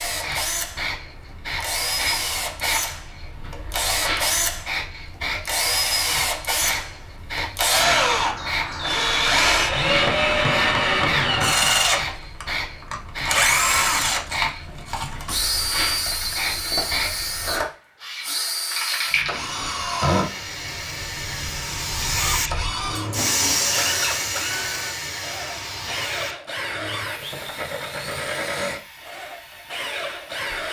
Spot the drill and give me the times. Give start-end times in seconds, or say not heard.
0.0-30.6.